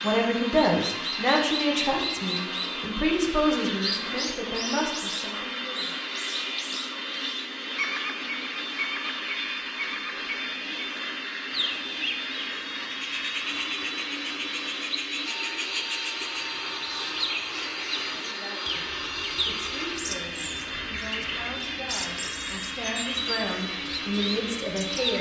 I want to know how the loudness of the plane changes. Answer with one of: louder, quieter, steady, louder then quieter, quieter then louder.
steady.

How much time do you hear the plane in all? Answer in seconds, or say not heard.
25 s.